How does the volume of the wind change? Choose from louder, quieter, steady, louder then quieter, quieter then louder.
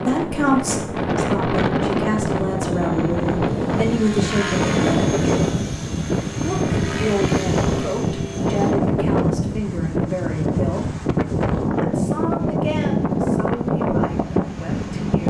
steady.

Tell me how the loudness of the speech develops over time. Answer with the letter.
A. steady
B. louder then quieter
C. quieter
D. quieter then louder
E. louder
C.